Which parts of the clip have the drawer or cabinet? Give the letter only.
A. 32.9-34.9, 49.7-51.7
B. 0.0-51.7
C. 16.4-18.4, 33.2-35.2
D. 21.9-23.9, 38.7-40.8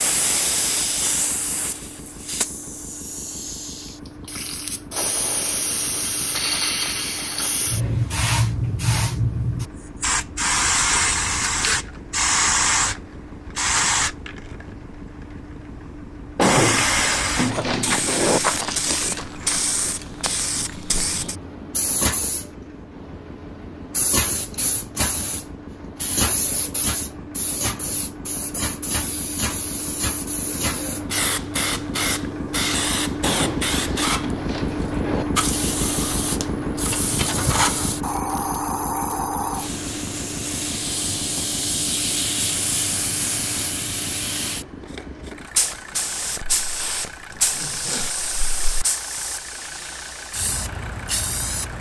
C.